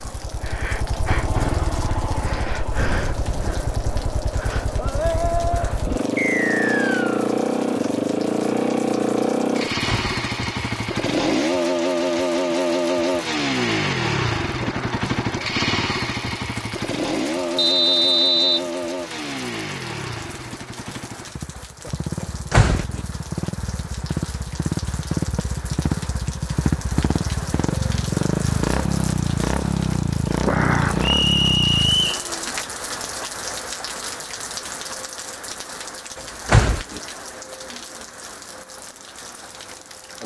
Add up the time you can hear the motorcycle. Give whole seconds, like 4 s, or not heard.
32 s.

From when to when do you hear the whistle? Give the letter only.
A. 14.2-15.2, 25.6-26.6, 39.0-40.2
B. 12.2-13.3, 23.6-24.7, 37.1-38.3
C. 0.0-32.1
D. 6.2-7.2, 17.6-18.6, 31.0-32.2
D.